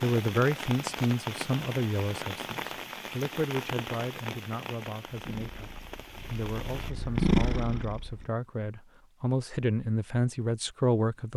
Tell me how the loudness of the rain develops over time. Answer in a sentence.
The volume of the rain goes down.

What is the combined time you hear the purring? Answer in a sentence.
You can hear the purring for 3 seconds altogether.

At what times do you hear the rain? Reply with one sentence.
You can hear the rain from 0.0 to 6.9 s.